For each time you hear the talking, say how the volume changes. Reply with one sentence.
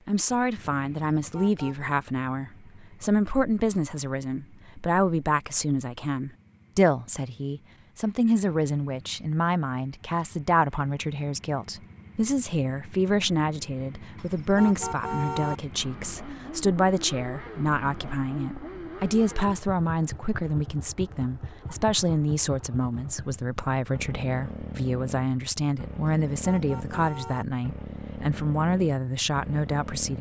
The talking can be heard from 0.1 to 30.1 s, at a steady volume.